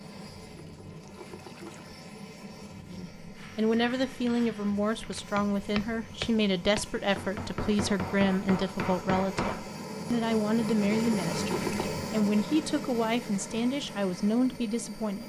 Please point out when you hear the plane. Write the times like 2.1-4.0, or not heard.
0.0-15.2.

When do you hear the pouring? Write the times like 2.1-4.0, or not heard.
0.6-1.9, 10.9-11.9.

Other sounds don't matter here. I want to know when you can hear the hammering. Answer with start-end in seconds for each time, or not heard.
3.4-9.6.